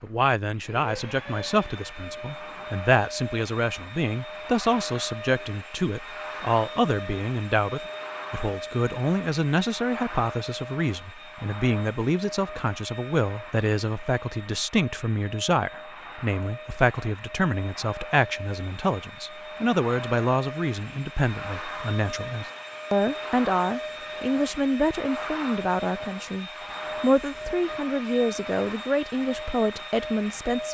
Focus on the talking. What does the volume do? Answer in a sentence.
The loudness of the talking stays about the same.